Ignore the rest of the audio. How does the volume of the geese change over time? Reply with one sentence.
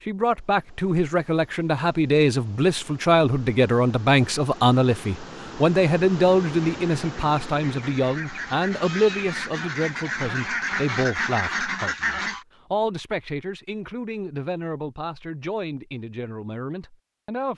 The loudness of the geese goes up.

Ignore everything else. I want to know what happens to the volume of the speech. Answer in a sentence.
The volume of the speech goes down.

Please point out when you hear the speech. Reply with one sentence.
You can hear the speech from 0.0 to 17.5 s.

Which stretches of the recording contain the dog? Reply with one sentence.
The dog can't be heard in this clip.